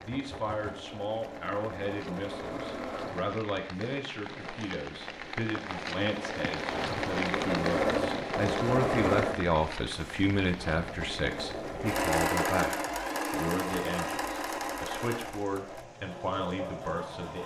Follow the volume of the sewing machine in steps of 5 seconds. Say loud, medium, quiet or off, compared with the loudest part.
medium, loud, loud, medium.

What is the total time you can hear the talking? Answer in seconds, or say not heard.
17 s.